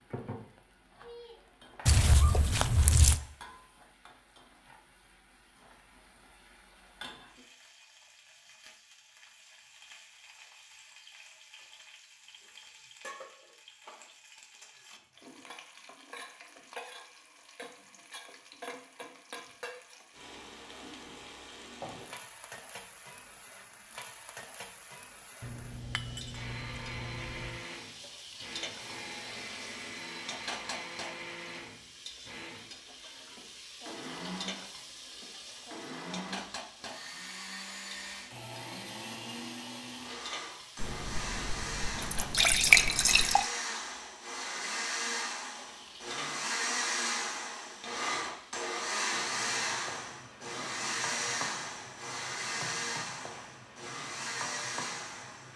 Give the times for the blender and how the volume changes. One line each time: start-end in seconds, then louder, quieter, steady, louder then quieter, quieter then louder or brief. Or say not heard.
26.3-55.5 louder.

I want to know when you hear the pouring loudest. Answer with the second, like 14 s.
43 s.